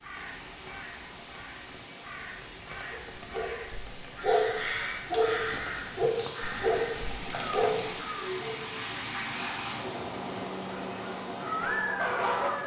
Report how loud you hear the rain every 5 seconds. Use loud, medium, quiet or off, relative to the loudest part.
medium, loud, loud.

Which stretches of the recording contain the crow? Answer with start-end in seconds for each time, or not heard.
0.0-8.3, 11.4-12.6.